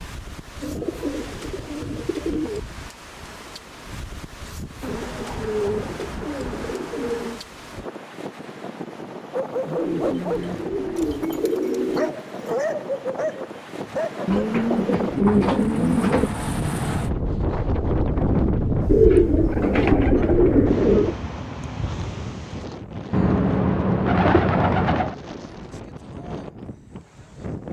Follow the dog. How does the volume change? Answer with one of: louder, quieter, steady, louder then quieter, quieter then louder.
quieter then louder.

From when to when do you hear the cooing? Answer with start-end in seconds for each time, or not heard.
0.6-2.6, 4.8-7.4, 9.8-12.2, 14.2-16.3, 18.9-21.1, 23.1-25.1.